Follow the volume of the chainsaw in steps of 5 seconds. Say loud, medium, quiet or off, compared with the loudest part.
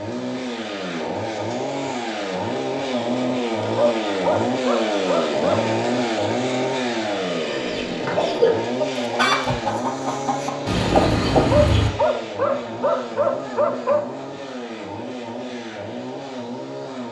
loud, loud, medium, medium.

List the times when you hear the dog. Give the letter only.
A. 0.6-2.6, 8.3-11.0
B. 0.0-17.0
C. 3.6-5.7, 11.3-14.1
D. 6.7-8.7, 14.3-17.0
C.